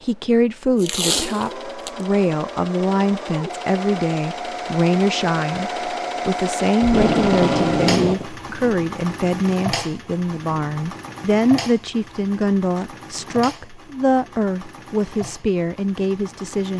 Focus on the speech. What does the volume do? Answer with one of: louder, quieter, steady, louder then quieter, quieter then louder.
steady.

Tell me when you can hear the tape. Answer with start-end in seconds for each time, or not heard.
0.8-1.9, 6.8-8.3, 12.7-13.4.